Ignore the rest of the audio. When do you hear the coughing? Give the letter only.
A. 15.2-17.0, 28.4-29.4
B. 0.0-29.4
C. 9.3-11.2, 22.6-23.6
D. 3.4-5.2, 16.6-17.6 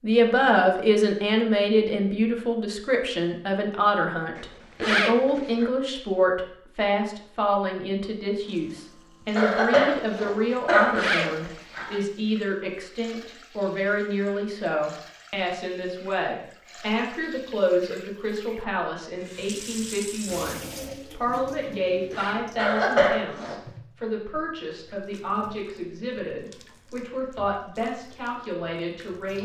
C.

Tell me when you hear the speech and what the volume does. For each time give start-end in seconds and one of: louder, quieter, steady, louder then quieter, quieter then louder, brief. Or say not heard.
0.0-29.4 quieter.